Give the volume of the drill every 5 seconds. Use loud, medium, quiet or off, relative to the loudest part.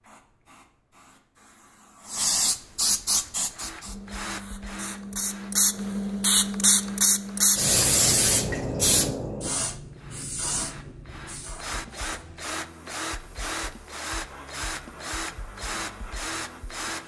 medium, quiet, loud, loud.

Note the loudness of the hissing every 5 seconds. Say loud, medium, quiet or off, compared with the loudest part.
medium, loud, quiet, quiet.